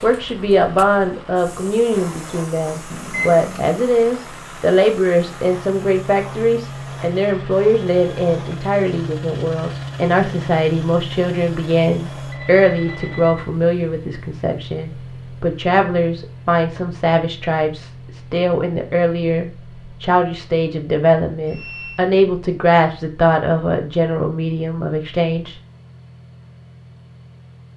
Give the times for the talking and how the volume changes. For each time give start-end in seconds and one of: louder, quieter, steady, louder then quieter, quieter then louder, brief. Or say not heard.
0.0-25.6 steady.